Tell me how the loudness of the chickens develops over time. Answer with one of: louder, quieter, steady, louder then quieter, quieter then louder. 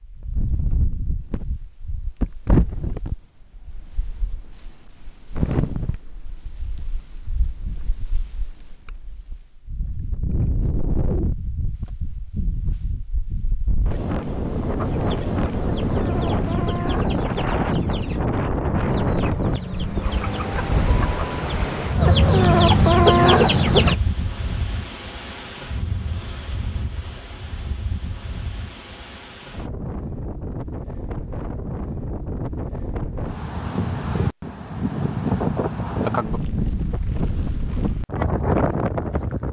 louder.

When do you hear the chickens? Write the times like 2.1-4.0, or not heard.
14.8-23.9.